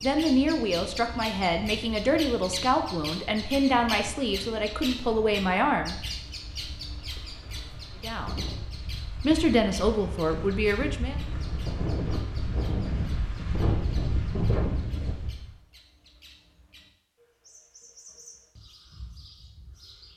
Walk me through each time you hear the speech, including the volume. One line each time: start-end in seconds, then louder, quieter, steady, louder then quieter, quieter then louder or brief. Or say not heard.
0.0-6.0 steady
8.0-8.4 brief
9.2-11.2 brief.